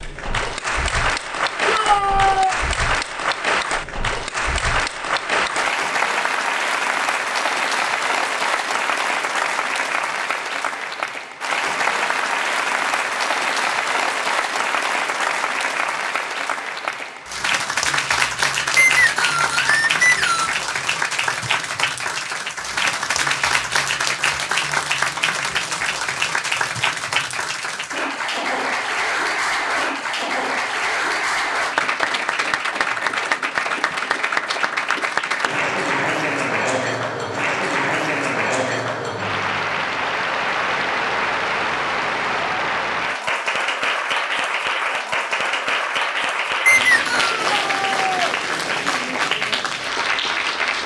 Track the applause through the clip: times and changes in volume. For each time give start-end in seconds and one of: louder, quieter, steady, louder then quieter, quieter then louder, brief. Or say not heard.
0.0-50.8 steady.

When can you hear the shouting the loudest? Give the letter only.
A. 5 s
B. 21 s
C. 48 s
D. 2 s
D.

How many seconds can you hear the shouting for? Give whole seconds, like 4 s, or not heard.
2 s.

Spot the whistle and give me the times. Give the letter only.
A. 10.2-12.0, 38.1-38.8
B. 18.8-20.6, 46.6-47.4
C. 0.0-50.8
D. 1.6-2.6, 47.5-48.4
B.